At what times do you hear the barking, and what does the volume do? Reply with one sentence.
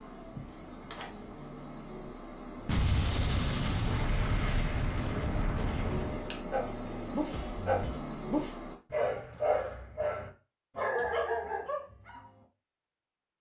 You can hear the barking from 6.5 to 12.2 s, at a steady volume.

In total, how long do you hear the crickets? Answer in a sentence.
You can hear the crickets for 9 seconds altogether.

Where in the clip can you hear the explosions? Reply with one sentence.
The explosions can be heard from 2.6 to 6.2 s.